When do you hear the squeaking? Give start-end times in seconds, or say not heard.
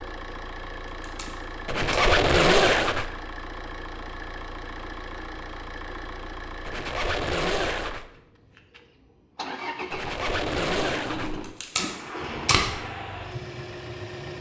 1.6-3.1, 6.7-8.1, 9.9-11.5.